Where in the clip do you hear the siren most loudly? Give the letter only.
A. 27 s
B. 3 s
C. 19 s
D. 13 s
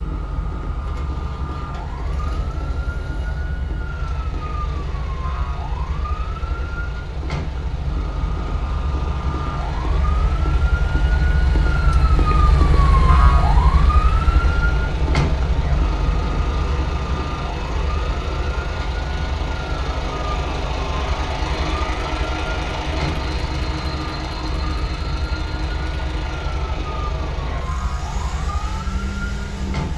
D.